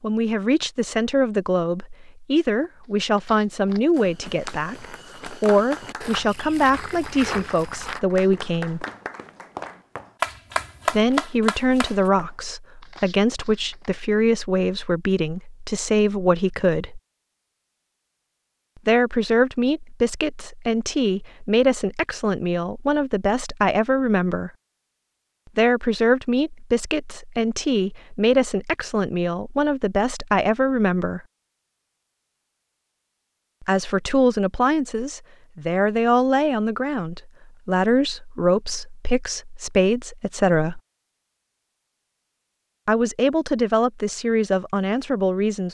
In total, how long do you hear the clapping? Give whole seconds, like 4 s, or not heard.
7 s.